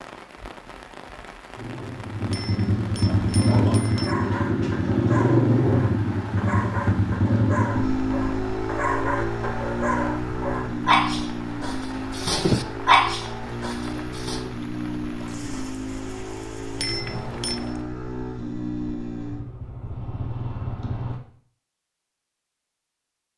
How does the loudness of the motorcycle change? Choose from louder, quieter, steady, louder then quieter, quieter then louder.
quieter.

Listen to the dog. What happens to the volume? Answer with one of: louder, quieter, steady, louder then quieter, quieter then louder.
louder.